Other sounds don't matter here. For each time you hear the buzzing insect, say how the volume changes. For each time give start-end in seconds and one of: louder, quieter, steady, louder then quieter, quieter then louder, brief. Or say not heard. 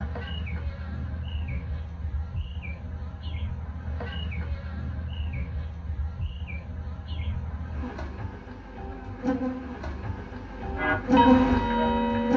0.0-12.3 louder.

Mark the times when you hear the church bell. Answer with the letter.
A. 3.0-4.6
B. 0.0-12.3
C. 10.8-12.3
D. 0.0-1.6
C.